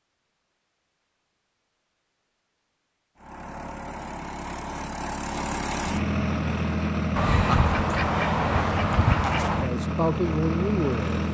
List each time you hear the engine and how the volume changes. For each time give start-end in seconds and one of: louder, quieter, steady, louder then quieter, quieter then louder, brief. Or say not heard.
3.1-11.2 louder.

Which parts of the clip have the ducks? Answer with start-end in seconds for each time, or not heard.
7.2-9.7.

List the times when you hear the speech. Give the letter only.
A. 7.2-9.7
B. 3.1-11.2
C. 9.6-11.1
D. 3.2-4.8
C.